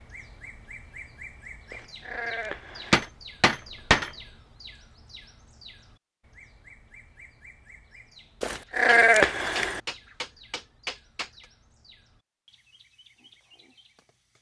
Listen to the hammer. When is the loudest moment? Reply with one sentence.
The volume of the hammer peaks at 4 seconds.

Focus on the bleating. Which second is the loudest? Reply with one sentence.
The volume of the bleating peaks at 9 seconds.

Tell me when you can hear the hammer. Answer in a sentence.
The hammer can be heard from 2.9 to 4.1 s and from 8.8 to 11.4 s.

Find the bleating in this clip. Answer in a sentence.
You can hear the bleating from 1.7 to 3.1 s and from 8.4 to 9.8 s.